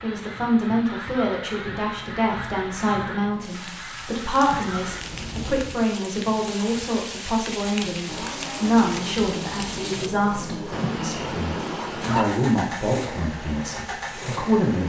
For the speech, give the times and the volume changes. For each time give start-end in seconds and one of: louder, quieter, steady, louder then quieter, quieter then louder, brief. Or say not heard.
0.0-14.8 steady.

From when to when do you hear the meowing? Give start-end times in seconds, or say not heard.
4.4-5.5, 10.7-12.2.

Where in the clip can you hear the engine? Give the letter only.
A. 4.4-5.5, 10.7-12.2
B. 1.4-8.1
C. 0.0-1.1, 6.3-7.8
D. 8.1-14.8
D.